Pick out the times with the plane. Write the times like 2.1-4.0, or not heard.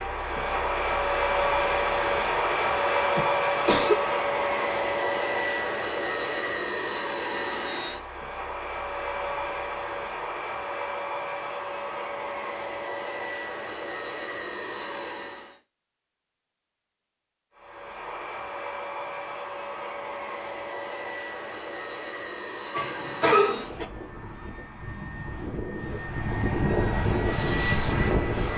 0.0-15.6, 17.6-28.5.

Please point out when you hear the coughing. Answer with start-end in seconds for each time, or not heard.
3.1-4.0, 22.7-23.9.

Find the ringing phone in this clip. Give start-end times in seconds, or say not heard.
not heard.